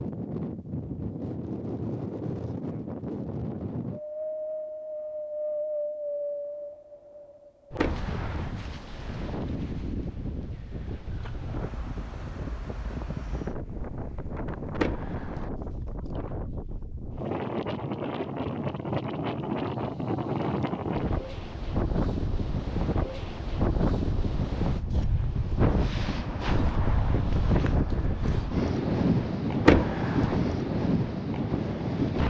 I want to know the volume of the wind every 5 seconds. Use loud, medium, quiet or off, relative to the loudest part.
medium, medium, medium, medium, loud, loud, loud.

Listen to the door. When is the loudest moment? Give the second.
30 s.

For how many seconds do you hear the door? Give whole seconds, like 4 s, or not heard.
2 s.